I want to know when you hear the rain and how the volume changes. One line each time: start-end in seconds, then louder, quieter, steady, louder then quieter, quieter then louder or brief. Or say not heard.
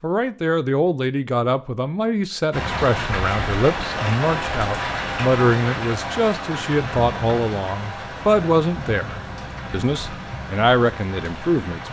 2.5-11.8 quieter.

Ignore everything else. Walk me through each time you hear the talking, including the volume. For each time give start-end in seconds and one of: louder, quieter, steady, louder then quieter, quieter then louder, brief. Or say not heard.
0.0-11.8 steady.